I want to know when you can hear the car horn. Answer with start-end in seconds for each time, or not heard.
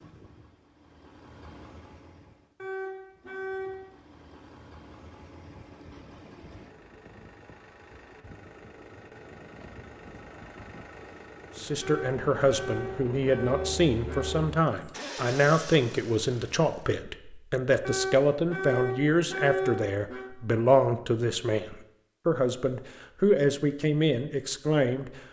2.5-3.9, 11.8-14.4, 17.8-20.3.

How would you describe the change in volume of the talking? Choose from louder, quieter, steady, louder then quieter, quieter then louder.
steady.